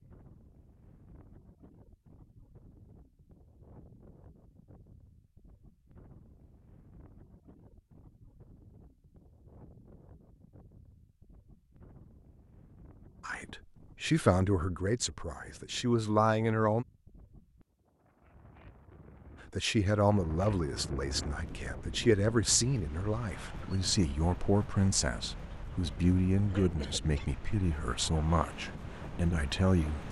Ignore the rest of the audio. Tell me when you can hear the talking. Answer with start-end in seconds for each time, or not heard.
13.2-16.9, 19.5-30.0.